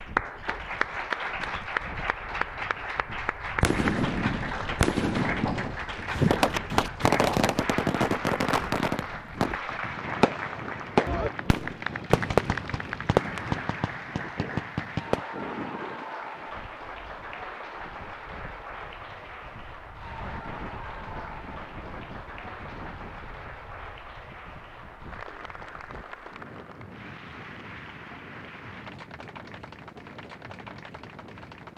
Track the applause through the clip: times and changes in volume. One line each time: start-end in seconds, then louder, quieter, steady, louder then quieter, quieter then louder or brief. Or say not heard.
0.0-31.7 quieter.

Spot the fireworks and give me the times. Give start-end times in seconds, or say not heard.
3.6-15.2.